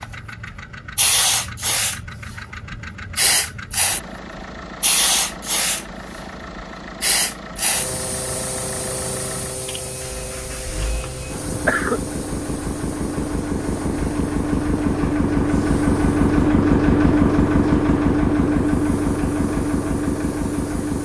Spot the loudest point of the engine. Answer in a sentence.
The volume of the engine peaks at 17 seconds.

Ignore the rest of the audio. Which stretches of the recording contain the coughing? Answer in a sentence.
You can hear the coughing from 11.3 to 12.0 s.